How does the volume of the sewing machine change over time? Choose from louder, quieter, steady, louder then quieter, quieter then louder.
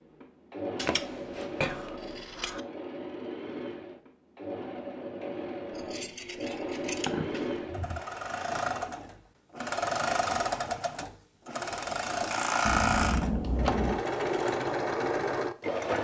louder.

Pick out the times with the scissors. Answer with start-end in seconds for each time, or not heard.
0.8-2.6, 5.8-8.0, 12.7-14.0.